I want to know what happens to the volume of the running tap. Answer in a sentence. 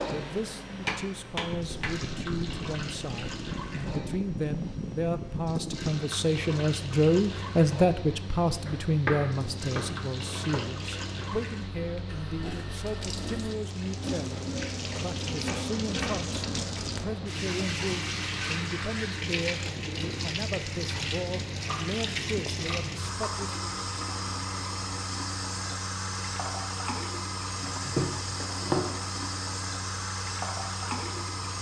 The volume of the running tap goes up.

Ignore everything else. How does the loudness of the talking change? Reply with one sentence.
The loudness of the talking goes up, then down.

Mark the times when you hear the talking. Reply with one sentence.
The talking can be heard from 0.1 to 23.6 s.